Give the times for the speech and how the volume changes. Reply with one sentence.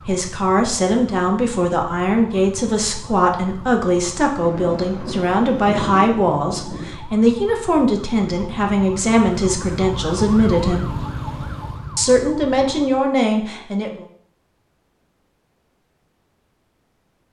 The speech can be heard from 0.1 to 10.8 s, at a steady volume; and briefly from 11.9 to 14.1 s.